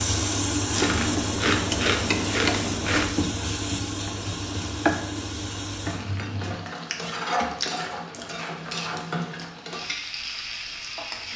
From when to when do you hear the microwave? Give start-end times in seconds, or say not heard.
not heard.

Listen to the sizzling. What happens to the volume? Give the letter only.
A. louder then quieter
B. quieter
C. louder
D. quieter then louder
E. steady
B.